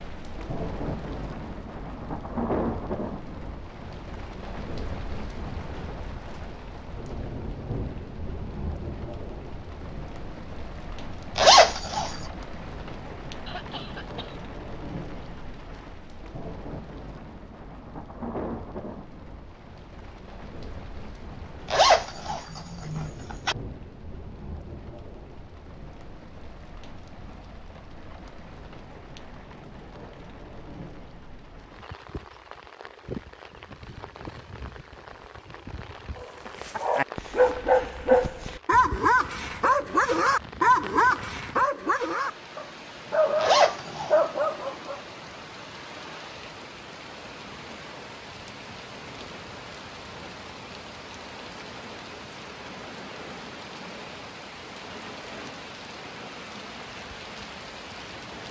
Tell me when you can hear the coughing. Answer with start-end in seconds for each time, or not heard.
13.4-14.4.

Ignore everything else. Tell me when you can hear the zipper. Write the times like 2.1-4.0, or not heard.
11.3-12.2, 21.7-23.6, 43.4-44.1.